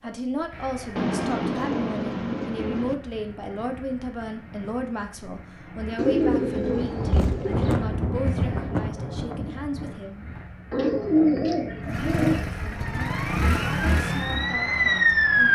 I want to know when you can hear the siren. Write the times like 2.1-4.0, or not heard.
12.7-15.5.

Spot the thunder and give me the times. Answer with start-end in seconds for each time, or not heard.
6.7-9.9.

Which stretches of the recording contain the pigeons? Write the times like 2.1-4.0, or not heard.
0.9-3.0, 6.0-7.8, 10.7-12.4.